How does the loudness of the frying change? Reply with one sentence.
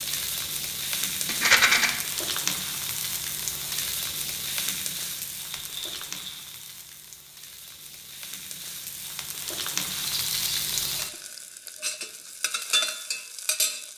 The loudness of the frying goes down, then up.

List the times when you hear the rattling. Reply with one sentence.
The rattling can be heard from 1.2 to 1.9 s, from 5.5 to 6.5 s and from 9.9 to 11.2 s.